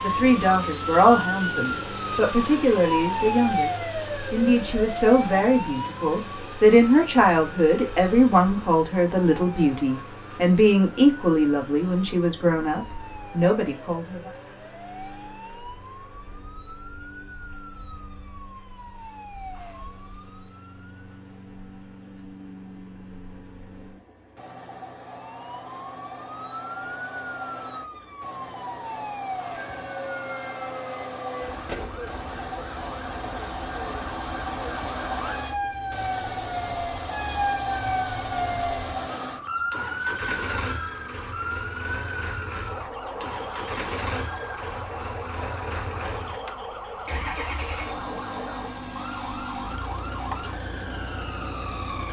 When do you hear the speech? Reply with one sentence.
You can hear the speech from 0.0 to 14.3 s.